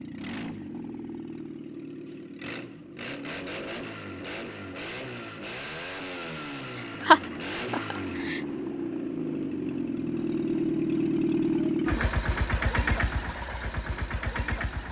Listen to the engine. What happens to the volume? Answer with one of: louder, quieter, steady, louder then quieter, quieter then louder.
louder.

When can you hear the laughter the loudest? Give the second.
7 s.